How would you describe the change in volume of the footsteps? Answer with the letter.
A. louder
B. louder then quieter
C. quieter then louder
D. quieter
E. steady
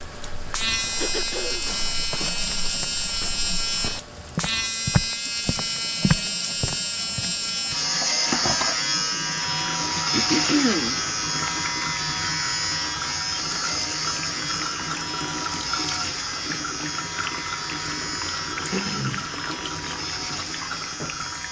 A.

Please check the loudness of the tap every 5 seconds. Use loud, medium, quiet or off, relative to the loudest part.
medium, loud, loud, loud, loud.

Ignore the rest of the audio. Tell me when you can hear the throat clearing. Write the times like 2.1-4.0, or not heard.
1.0-2.5, 10.1-10.9, 18.7-19.3.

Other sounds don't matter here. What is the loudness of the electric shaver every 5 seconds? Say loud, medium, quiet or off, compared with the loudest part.
loud, loud, loud, medium, medium.